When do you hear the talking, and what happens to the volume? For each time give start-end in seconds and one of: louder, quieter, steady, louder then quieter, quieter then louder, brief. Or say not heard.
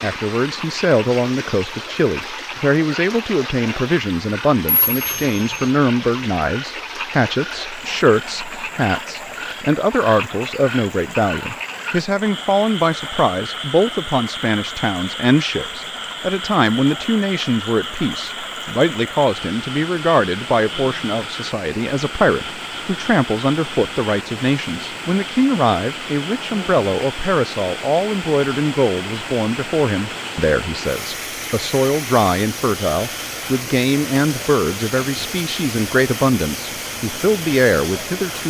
0.0-38.4 steady.